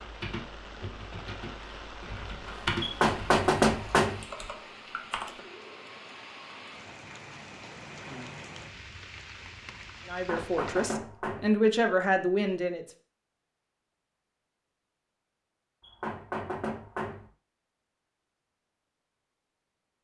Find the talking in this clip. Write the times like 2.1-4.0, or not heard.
10.1-12.8.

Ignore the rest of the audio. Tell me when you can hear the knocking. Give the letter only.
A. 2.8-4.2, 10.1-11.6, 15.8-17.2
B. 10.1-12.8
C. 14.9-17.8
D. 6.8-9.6
A.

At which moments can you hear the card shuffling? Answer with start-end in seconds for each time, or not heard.
not heard.